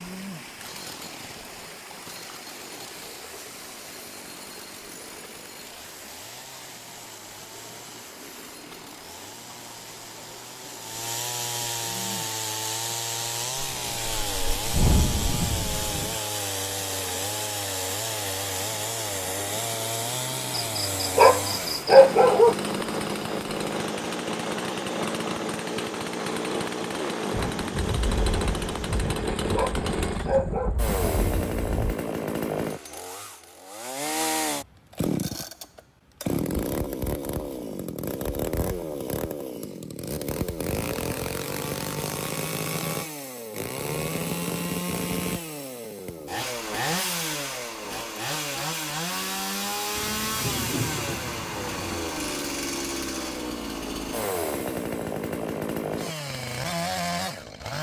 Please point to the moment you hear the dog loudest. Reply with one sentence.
The loudest moment of the dog is at 22 seconds.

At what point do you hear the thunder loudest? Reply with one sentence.
The loudest moment of the thunder is at 15 seconds.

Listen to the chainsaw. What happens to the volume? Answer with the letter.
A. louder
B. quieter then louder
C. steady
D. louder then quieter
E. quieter
A.